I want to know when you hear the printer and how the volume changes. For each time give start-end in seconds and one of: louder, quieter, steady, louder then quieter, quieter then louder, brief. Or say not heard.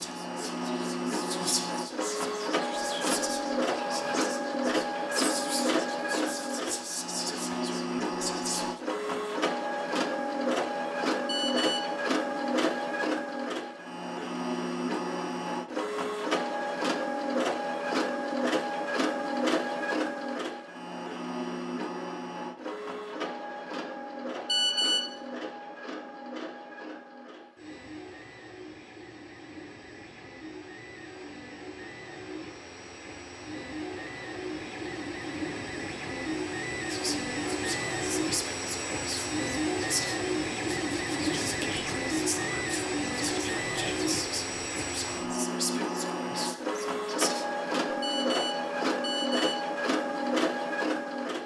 0.0-51.4 quieter then louder.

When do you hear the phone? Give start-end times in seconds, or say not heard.
11.2-11.9, 24.4-25.1, 48.0-49.6.